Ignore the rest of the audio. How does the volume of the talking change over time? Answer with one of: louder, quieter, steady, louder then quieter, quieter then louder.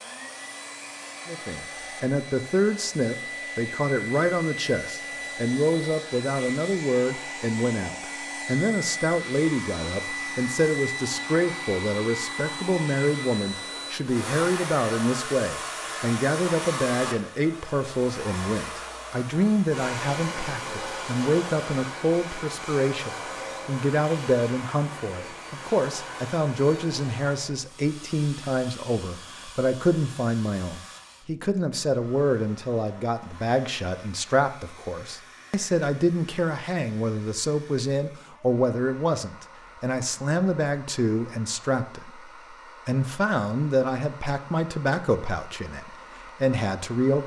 steady.